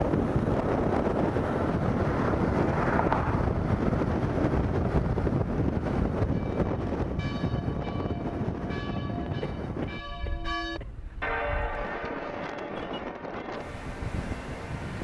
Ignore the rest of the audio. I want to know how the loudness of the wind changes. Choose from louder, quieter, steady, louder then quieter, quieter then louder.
quieter.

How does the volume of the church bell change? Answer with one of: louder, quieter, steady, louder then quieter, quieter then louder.
louder then quieter.